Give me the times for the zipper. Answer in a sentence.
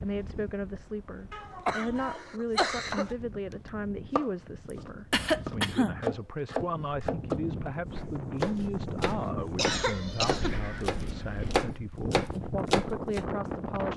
You can't hear the zipper here.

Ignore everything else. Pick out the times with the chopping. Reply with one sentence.
You can hear the chopping from 2.7 to 13.2 s.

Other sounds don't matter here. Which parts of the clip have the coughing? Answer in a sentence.
You can hear the coughing from 1.3 to 3.1 s, from 5.1 to 6.0 s and from 9.6 to 10.6 s.